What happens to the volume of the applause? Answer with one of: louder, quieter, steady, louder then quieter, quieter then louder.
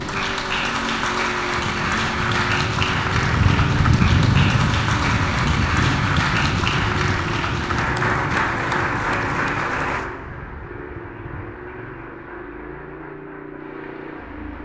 quieter.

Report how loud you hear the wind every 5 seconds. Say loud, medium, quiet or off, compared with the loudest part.
loud, loud, quiet.